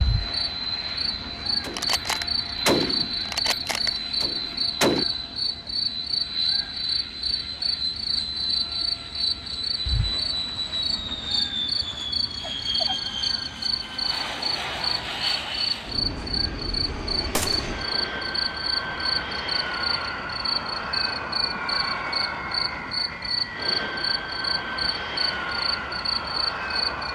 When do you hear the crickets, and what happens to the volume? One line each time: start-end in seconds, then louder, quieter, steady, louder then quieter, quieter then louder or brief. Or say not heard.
0.0-27.1 steady.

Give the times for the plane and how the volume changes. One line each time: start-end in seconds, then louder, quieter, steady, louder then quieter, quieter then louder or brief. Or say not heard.
0.0-27.1 steady.